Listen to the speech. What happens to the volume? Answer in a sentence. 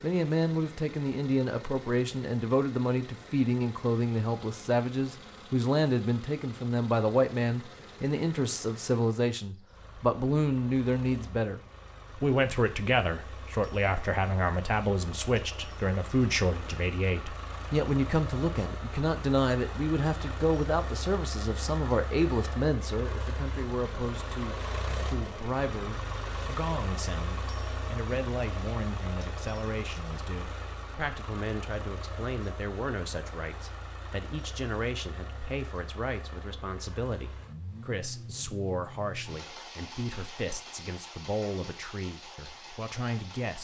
The volume of the speech goes down.